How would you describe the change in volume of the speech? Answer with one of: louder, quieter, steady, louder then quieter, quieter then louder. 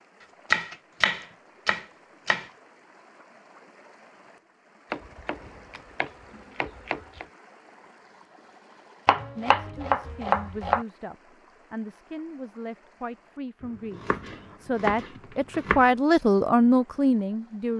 louder.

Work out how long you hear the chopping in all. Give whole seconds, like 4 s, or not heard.
8 s.